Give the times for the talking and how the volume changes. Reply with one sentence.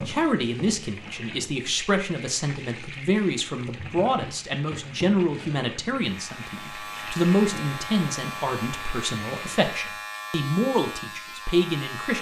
You can hear the talking from 0.1 to 12.1 s, at a steady volume.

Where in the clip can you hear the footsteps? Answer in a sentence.
The footsteps can't be heard in this clip.